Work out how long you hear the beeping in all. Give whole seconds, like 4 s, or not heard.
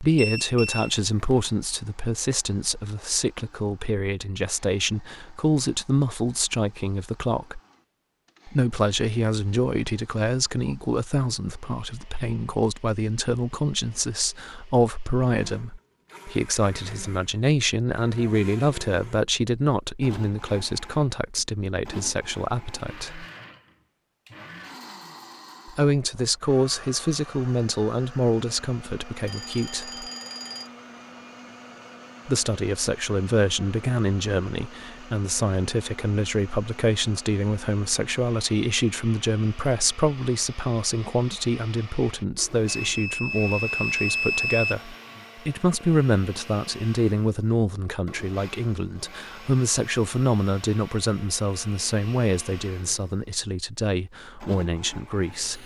5 s.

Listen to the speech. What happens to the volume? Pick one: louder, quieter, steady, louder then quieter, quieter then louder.
steady.